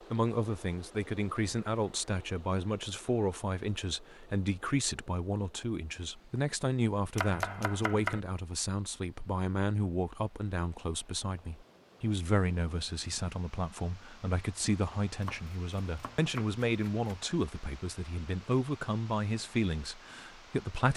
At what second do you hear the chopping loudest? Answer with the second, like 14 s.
8 s.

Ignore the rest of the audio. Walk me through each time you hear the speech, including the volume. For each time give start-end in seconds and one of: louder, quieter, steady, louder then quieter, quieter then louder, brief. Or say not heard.
0.1-20.9 steady.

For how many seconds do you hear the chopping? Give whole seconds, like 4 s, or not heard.
3 s.